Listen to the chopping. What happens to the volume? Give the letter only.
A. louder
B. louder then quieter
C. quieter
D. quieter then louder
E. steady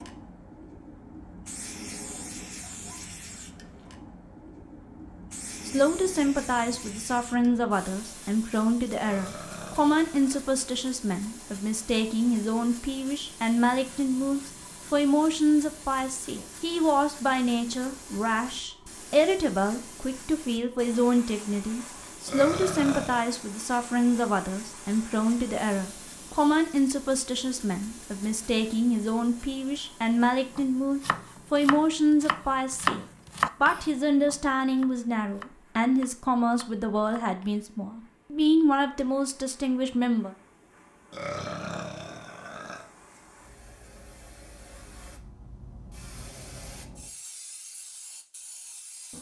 B.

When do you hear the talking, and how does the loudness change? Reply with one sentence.
You can hear the talking from 5.7 to 40.3 s, at a steady volume.